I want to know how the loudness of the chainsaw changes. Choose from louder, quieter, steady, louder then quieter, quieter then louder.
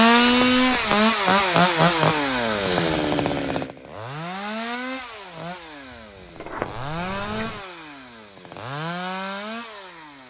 quieter.